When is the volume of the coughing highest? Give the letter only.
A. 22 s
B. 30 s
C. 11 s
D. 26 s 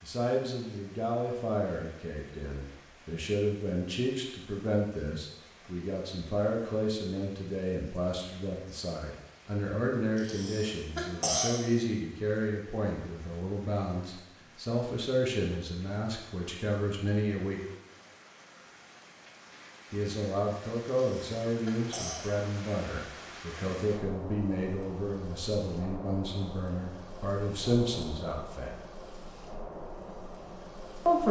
C.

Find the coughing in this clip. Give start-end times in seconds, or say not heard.
10.2-11.7, 20.9-22.4.